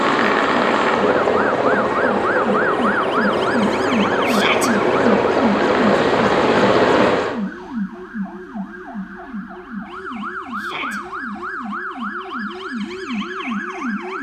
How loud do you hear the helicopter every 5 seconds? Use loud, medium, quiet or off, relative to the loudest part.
loud, loud, off.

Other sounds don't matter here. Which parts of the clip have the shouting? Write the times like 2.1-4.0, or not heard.
4.2-4.7, 10.6-11.0.